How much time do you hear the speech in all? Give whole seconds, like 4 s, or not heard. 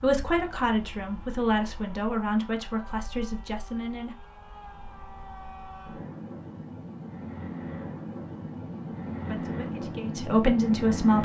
6 s.